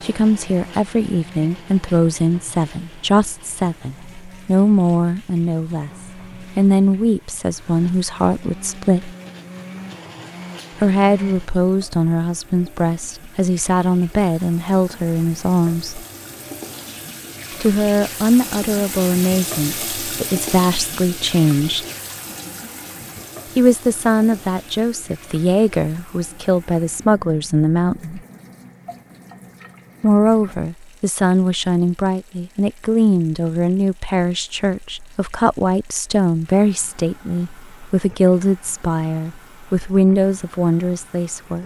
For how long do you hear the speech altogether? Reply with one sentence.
You can hear the speech for 35 seconds altogether.